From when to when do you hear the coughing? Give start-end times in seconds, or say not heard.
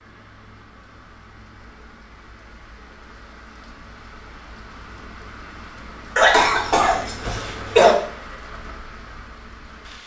6.2-8.0.